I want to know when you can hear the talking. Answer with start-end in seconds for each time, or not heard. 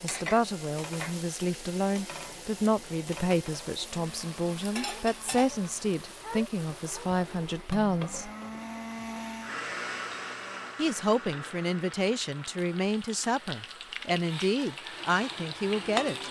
0.0-8.3, 10.8-16.2.